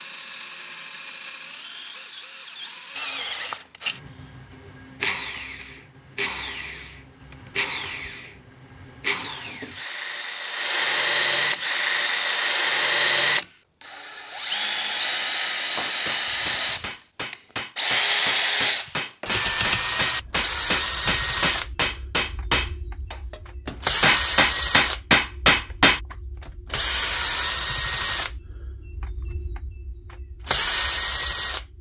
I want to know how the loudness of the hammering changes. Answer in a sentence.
The loudness of the hammering goes up.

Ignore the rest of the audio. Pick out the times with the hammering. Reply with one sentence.
You can hear the hammering from 15.8 to 26.0 s.